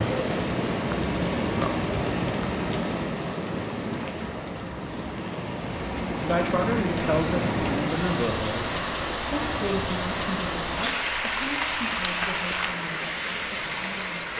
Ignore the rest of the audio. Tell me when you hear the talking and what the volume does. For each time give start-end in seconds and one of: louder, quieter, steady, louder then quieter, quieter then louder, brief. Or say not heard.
6.2-14.3 quieter.